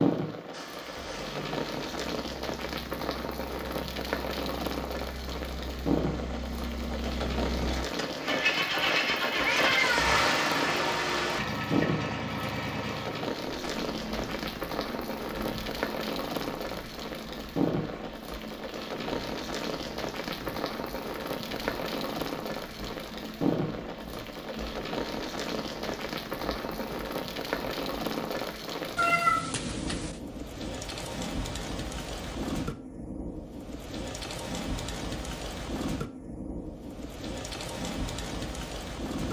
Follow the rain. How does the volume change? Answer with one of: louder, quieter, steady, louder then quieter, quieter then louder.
steady.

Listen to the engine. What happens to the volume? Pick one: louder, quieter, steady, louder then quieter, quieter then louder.
louder then quieter.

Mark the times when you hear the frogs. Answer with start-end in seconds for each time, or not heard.
not heard.